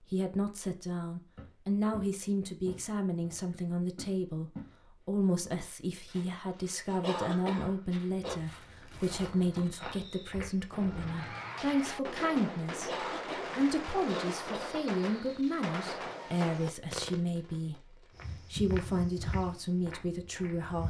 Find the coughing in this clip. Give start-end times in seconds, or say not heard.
7.0-8.4, 12.8-14.8.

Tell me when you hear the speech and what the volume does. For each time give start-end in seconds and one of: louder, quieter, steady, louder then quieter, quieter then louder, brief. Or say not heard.
0.0-20.8 steady.